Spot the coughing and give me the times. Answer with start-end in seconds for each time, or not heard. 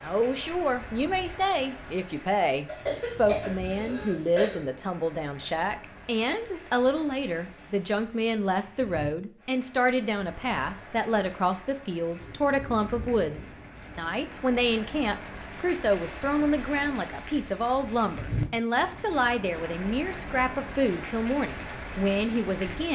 2.6-4.6.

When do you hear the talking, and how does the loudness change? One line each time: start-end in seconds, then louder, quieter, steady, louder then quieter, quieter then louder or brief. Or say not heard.
0.0-22.8 steady.